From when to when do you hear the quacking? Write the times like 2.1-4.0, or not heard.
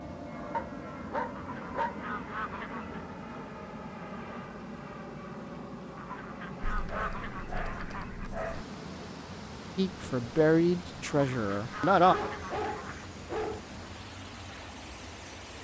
1.4-3.0, 6.0-8.3, 11.1-13.1.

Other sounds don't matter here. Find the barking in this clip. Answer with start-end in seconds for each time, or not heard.
0.5-2.0, 6.6-8.7, 12.1-13.6.